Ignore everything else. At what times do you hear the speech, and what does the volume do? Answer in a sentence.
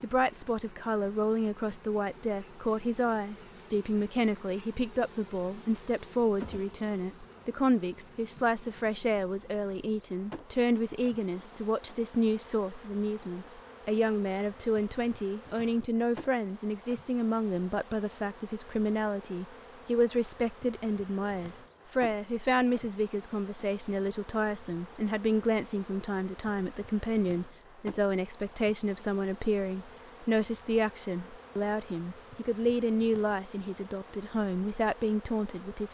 The speech can be heard from 0.0 to 35.8 s, at a steady volume.